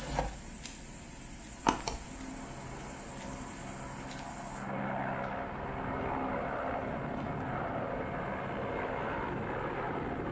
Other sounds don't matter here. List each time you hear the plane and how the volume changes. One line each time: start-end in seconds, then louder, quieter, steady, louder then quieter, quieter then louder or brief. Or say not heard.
1.9-10.2 louder.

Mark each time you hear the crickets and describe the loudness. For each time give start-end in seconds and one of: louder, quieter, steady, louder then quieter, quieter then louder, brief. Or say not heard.
0.0-10.2 quieter.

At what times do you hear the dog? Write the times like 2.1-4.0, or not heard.
not heard.